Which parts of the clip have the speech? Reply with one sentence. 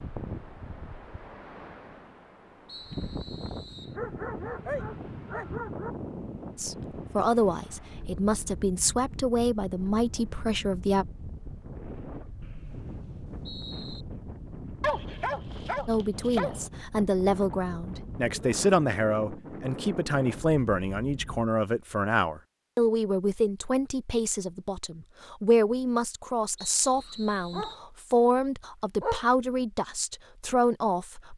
The speech can be heard from 6.5 to 11.1 s and from 15.8 to 31.3 s.